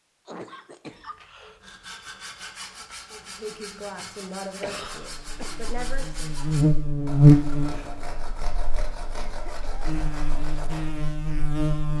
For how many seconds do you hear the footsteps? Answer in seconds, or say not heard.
not heard.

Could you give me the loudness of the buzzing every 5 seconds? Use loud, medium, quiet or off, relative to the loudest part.
off, loud, medium.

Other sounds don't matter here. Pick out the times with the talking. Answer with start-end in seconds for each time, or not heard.
3.1-6.3.